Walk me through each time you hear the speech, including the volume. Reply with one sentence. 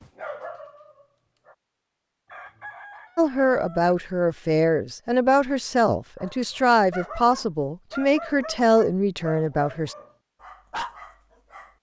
The speech can be heard from 3.1 to 9.9 s, at a steady volume.